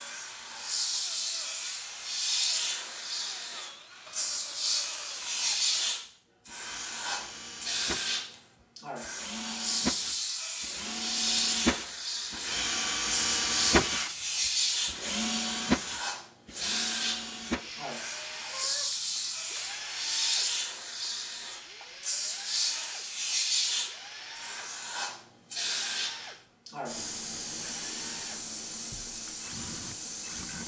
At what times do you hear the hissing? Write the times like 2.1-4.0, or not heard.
0.0-30.6.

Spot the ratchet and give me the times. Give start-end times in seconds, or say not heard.
not heard.